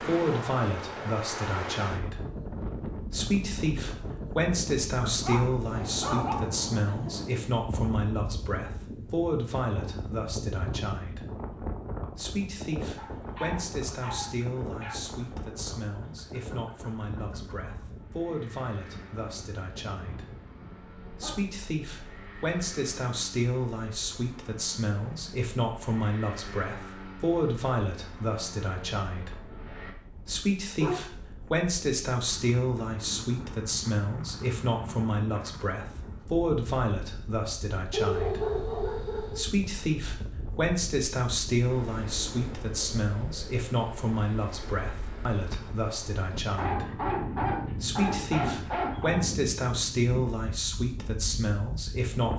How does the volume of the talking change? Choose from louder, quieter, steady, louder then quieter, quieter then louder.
quieter then louder.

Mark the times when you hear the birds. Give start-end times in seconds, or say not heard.
not heard.